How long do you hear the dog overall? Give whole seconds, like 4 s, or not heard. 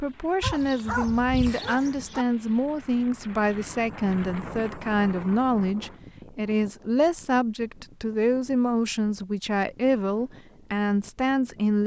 2 s.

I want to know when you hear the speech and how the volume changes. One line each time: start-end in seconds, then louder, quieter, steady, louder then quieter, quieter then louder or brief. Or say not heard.
0.0-11.8 steady.